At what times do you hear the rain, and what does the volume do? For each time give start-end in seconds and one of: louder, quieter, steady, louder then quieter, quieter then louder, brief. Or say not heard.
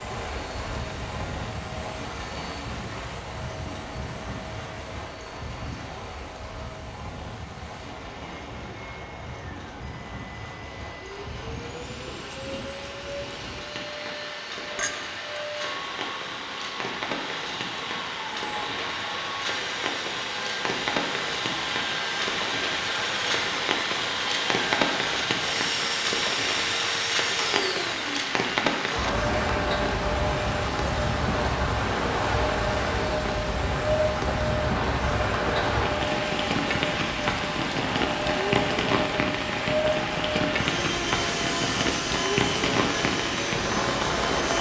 0.0-44.5 louder.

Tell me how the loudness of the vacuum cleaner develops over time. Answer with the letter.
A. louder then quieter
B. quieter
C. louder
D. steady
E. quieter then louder
C.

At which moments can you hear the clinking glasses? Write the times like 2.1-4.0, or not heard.
14.8-15.4.